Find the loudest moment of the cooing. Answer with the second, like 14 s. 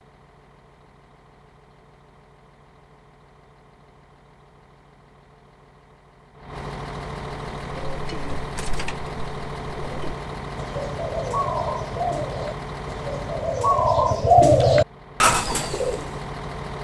14 s.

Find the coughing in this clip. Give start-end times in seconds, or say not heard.
not heard.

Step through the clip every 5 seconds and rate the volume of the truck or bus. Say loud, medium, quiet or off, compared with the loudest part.
quiet, loud, loud, loud.